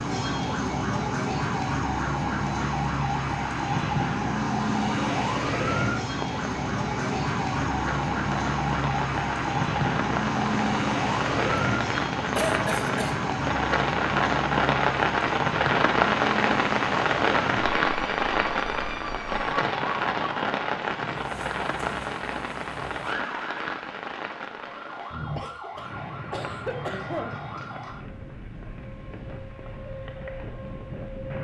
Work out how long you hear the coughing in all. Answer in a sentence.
The coughing can be heard for 3 seconds in total.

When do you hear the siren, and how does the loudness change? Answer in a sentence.
You can hear the siren from 0.0 to 31.3 s, getting quieter.